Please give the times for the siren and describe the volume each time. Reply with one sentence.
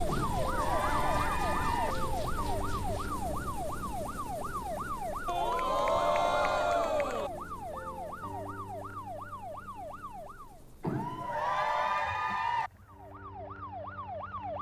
The siren can be heard from 0.0 to 10.6 s, getting quieter; and briefly from 12.8 to 14.5 s.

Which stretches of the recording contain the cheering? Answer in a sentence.
You can hear the cheering from 0.1 to 1.9 s, from 5.2 to 7.3 s and from 10.8 to 12.7 s.